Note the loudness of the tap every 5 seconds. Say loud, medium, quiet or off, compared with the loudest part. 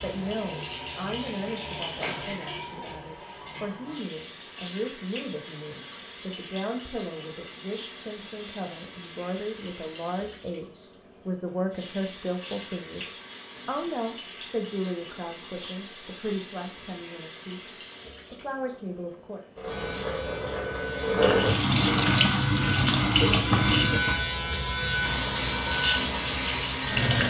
quiet, quiet, quiet, quiet, loud, loud.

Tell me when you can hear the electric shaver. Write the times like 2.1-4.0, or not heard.
19.6-27.2.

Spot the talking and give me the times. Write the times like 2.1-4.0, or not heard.
0.0-19.4.